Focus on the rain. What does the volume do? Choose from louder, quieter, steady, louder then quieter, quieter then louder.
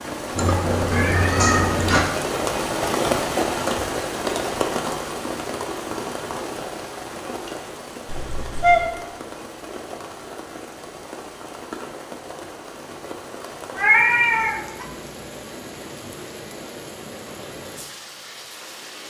quieter.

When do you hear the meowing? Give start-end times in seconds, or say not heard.
0.3-2.1, 8.1-8.9, 13.8-14.8.